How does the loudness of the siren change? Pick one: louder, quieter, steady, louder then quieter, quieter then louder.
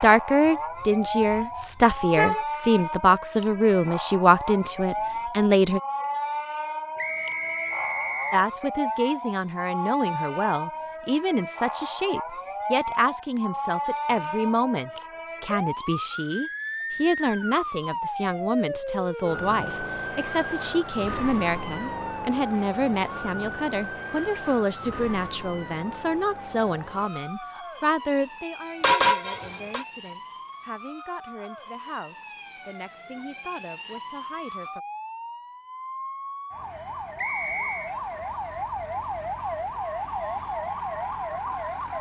quieter then louder.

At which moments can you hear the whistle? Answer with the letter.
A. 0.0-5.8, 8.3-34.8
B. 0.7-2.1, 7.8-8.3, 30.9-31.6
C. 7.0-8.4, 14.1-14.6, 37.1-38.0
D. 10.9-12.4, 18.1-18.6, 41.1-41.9
C.